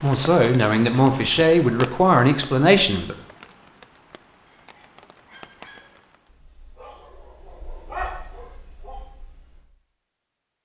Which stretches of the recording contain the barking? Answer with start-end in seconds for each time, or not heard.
4.5-9.7.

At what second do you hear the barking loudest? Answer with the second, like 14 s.
8 s.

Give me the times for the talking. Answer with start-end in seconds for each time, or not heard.
0.0-3.1.